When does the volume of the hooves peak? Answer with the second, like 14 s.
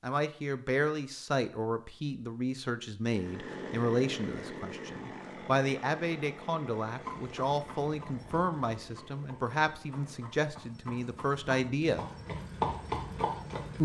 13 s.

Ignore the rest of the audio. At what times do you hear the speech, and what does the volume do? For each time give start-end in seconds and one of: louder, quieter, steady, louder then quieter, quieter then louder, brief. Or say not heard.
0.0-12.2 steady.